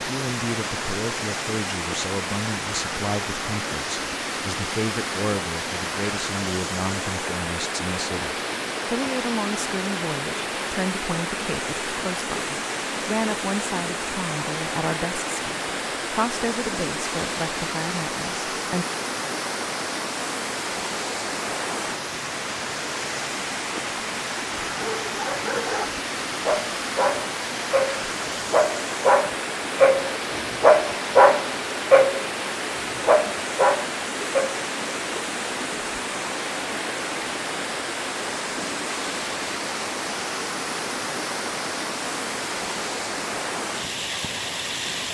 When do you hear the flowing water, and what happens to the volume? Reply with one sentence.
You can hear the flowing water from 0.0 to 45.1 s, at a steady volume.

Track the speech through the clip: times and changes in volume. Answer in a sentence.
The speech can be heard from 0.1 to 18.9 s, at a steady volume.